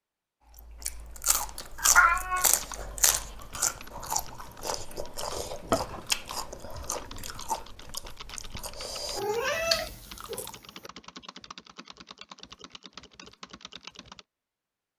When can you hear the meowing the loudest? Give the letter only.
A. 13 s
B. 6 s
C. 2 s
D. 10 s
C.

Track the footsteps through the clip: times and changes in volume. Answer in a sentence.
You can't hear the footsteps here.